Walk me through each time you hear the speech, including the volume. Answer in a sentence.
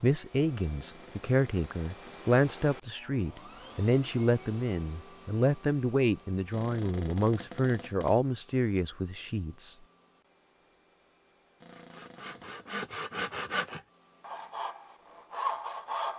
The speech can be heard from 0.0 to 9.8 s, at a steady volume.